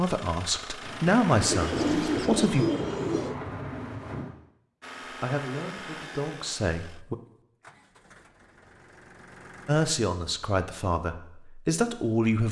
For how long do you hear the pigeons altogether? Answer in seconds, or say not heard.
2 s.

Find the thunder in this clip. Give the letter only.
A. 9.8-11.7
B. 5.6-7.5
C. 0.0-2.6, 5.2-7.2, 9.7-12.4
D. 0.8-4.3
D.